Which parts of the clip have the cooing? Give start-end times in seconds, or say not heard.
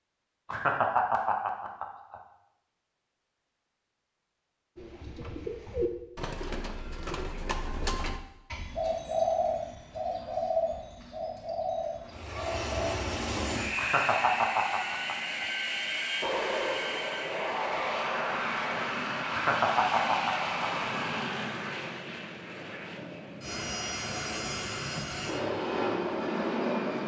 4.8-12.9.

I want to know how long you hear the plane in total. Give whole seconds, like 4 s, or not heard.
15 s.